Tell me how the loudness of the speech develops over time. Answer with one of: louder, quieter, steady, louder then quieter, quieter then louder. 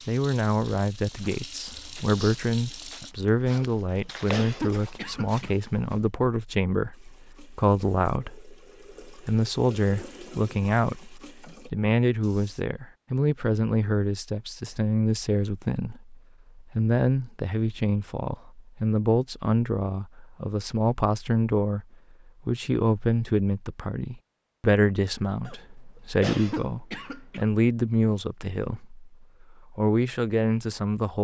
steady.